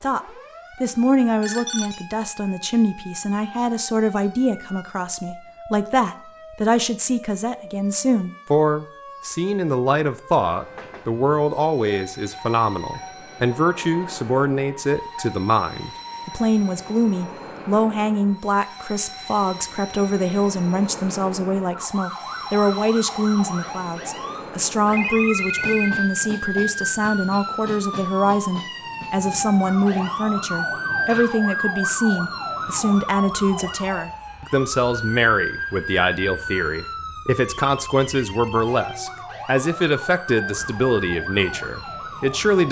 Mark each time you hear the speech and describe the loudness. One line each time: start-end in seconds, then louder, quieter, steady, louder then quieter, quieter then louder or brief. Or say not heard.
0.0-42.6 steady.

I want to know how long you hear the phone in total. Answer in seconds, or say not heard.
3 s.